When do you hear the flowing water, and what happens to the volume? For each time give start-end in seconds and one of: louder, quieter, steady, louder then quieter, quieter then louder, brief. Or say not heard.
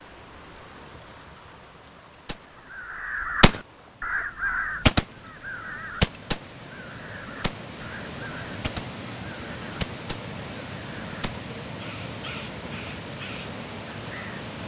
0.0-14.6 louder.